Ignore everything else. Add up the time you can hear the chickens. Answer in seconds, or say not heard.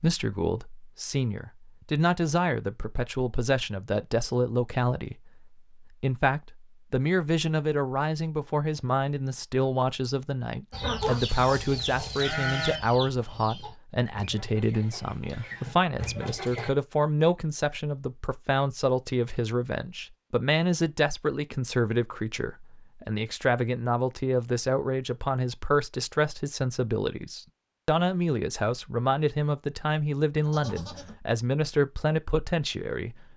6 s.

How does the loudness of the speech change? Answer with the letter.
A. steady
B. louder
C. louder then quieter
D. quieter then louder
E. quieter
A.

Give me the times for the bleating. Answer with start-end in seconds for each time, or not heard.
11.0-12.8, 30.4-31.1.